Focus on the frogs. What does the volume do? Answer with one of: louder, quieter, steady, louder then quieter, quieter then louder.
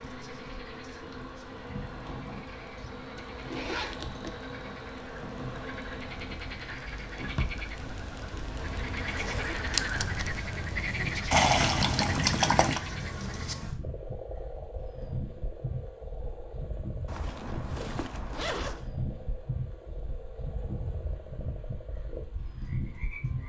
louder then quieter.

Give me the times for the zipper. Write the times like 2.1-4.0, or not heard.
3.1-4.4, 9.0-9.6, 17.1-18.9.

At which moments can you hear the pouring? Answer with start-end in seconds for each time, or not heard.
11.3-12.8.